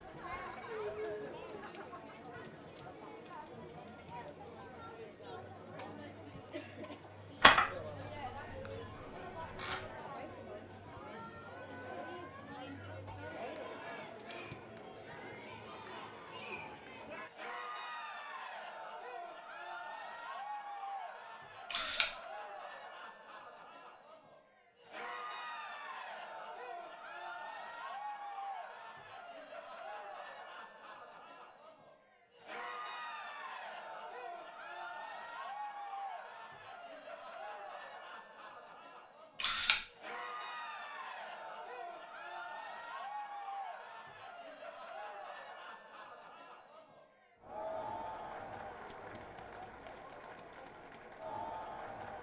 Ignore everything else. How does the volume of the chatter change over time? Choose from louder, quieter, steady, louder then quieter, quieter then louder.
steady.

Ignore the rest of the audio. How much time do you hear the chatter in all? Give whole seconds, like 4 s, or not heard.
52 s.